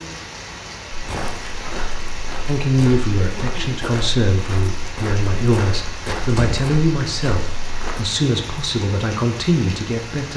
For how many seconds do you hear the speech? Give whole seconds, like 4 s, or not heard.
8 s.